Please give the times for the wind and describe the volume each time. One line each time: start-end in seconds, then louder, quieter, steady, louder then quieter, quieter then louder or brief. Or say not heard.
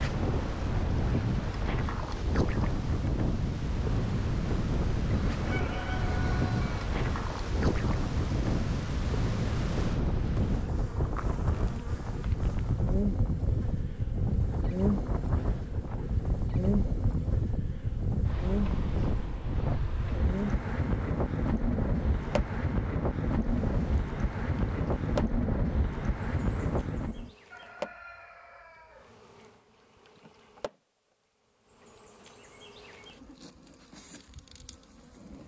0.0-27.3 steady.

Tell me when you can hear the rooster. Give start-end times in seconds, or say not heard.
5.3-6.9, 27.5-29.1.